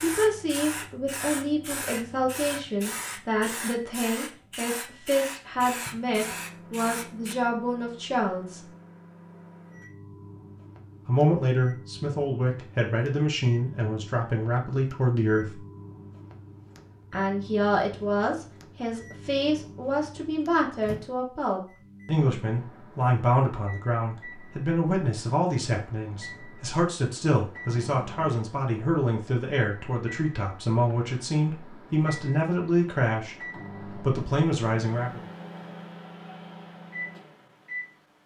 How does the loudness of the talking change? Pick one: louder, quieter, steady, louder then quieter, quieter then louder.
steady.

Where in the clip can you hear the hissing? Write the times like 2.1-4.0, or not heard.
0.0-7.3.